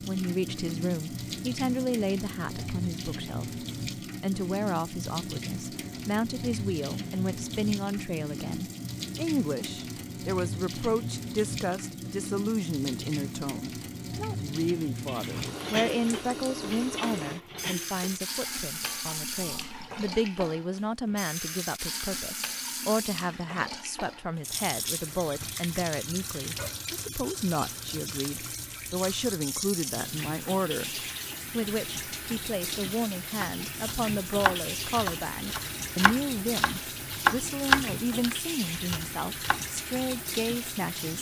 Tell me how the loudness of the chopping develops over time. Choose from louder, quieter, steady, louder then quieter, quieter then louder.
louder then quieter.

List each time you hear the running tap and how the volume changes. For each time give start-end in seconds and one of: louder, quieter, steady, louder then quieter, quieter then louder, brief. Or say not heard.
0.0-41.1 steady.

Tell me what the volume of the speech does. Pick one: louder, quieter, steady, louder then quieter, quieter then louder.
steady.